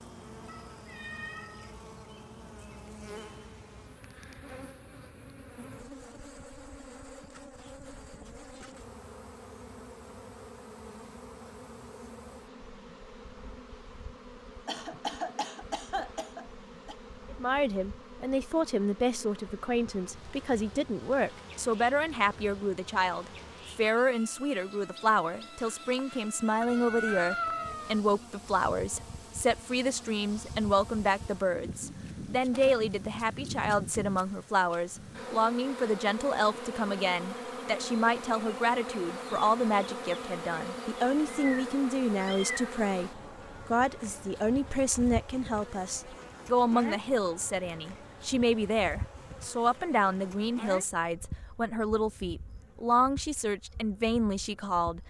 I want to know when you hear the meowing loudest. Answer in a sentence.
The volume of the meowing peaks at 27 seconds.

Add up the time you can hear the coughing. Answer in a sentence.
The coughing can be heard for 2 seconds in total.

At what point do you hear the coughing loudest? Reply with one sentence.
The volume of the coughing peaks at 15 seconds.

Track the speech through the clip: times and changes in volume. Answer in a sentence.
The speech can be heard from 17.3 to 55.0 s, at a steady volume.